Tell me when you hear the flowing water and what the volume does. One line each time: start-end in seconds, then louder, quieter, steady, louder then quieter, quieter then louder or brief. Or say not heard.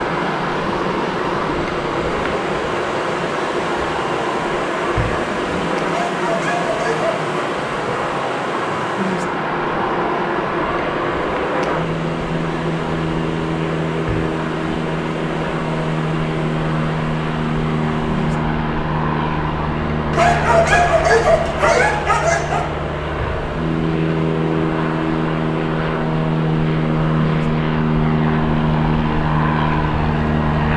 0.0-30.7 quieter.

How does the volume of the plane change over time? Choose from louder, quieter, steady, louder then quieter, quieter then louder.
louder.